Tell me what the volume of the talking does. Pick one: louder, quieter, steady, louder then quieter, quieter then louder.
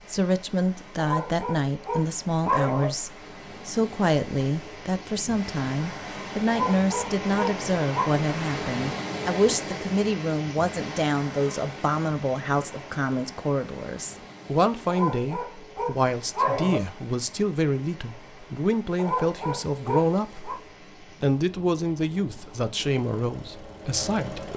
steady.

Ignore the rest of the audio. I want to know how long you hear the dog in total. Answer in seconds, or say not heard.
7 s.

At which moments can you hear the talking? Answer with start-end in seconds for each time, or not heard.
0.1-24.5.